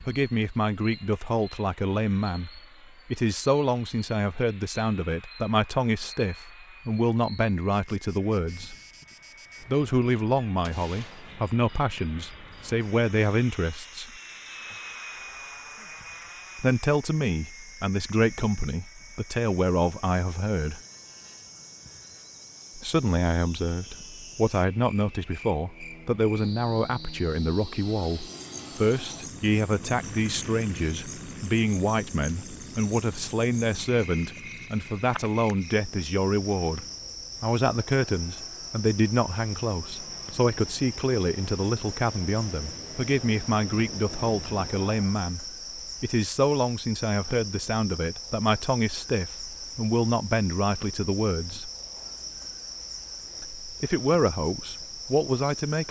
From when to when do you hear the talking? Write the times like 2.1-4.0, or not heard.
0.0-8.8, 9.6-14.1, 16.6-20.8, 22.8-51.7, 53.4-55.8.